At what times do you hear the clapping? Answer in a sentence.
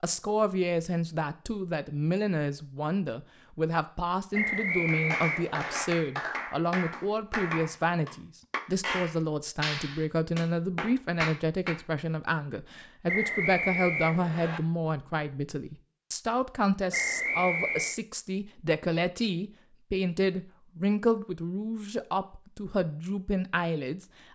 The clapping can be heard from 4.8 to 11.8 s.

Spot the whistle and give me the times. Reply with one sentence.
The whistle can be heard from 4.3 to 5.8 s, from 13.1 to 14.6 s and from 16.9 to 17.9 s.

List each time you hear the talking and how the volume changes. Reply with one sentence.
You can hear the talking from 0.0 to 24.1 s, at a steady volume.